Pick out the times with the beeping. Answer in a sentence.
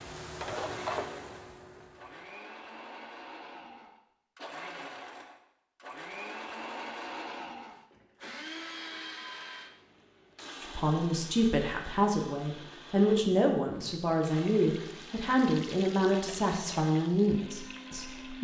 The beeping can't be heard in this clip.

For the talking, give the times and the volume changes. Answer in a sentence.
The talking can be heard from 10.6 to 18.3 s, at a steady volume.